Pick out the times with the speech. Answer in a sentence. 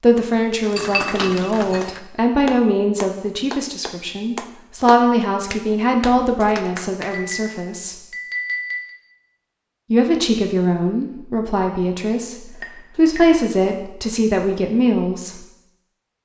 You can hear the speech from 0.0 to 8.0 s and from 9.9 to 15.4 s.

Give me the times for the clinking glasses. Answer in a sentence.
The clinking glasses can be heard from 0.8 to 1.9 s, from 7.0 to 8.9 s and from 12.6 to 13.4 s.